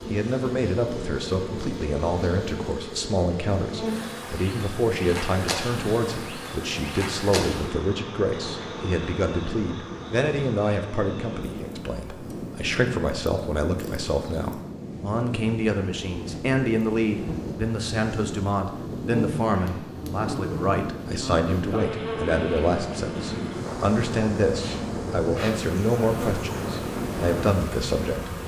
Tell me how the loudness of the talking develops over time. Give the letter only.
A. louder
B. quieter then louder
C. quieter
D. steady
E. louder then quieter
D.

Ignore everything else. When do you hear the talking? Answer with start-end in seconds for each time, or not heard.
0.1-28.3.